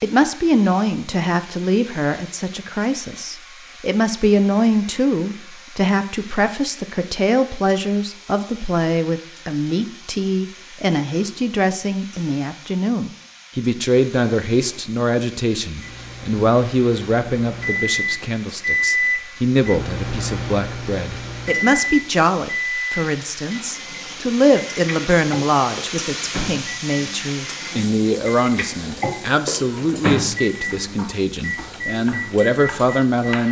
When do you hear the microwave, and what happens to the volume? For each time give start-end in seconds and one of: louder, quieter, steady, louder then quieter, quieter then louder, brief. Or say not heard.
15.8-33.2 quieter then louder.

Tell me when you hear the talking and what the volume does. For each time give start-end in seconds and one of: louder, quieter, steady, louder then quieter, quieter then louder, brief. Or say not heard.
0.0-33.4 steady.